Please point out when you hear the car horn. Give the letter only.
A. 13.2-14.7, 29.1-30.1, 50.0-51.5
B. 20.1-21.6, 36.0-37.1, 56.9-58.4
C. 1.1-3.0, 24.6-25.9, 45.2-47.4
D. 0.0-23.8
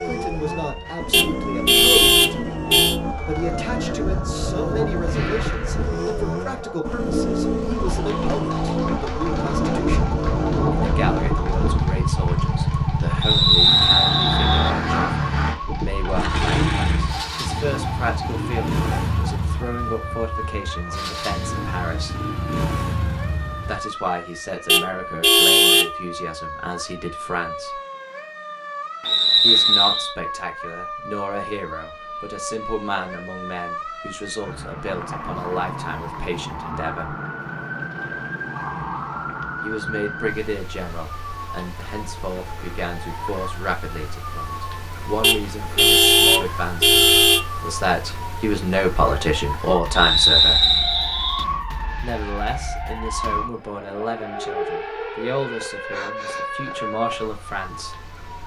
C.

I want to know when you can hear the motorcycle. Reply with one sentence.
You can hear the motorcycle from 0.0 to 23.8 s.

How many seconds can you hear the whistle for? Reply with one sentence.
The whistle can be heard for 4 seconds in total.